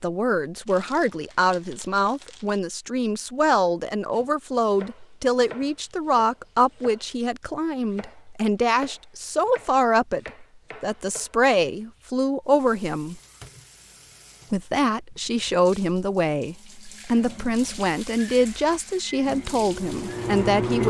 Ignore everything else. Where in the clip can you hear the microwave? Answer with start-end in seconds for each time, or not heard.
19.2-20.8.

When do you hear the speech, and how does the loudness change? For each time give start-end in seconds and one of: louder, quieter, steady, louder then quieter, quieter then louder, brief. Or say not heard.
0.0-13.2 steady
14.5-20.8 steady.